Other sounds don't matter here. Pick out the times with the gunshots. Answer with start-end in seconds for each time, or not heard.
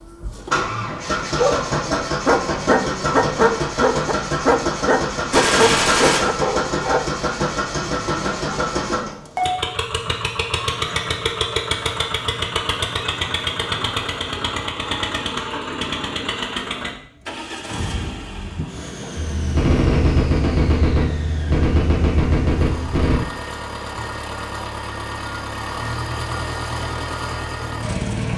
5.3-6.2, 19.1-23.2.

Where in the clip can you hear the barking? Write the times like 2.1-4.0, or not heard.
1.2-7.0.